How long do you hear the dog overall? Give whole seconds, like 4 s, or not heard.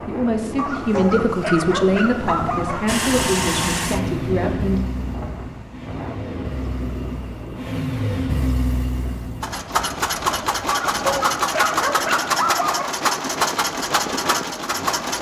5 s.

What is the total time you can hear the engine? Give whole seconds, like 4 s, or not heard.
12 s.